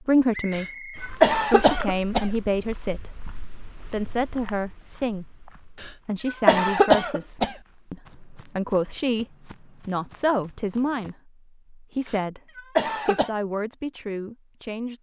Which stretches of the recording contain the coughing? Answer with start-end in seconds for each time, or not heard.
0.6-2.3, 5.8-7.5, 12.1-13.3.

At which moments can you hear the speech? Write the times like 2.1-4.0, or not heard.
0.1-14.9.